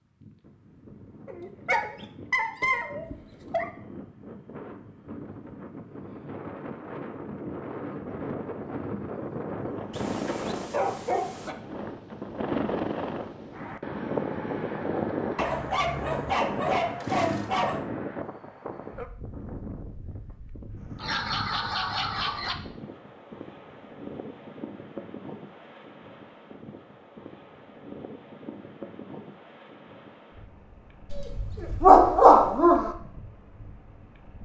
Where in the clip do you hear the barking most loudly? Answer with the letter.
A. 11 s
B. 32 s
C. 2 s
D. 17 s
B.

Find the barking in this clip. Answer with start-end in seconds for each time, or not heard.
1.2-3.7, 9.9-11.6, 15.3-17.8, 20.9-22.6, 31.1-32.9.